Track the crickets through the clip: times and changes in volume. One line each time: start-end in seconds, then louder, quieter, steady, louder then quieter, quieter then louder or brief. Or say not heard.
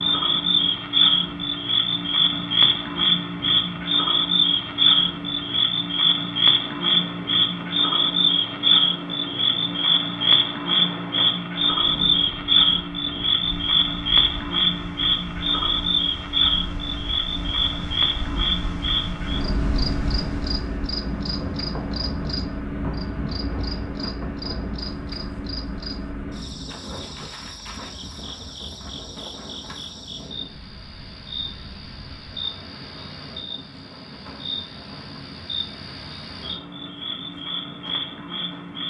0.0-38.8 quieter.